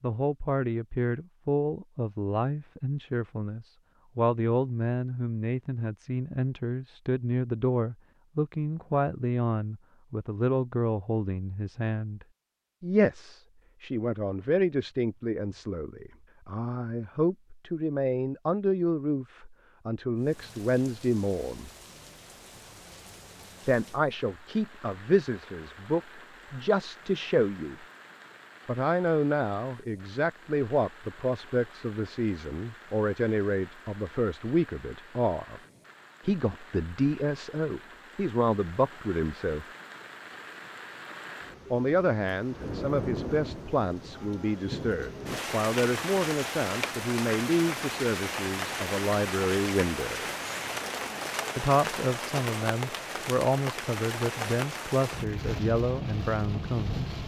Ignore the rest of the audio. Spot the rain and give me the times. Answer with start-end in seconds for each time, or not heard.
20.1-57.2.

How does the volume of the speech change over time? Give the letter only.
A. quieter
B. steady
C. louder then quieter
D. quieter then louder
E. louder
B.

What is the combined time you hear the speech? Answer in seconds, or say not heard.
50 s.